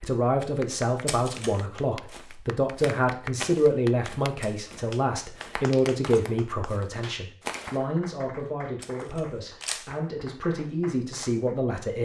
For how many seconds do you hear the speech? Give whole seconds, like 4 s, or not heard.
12 s.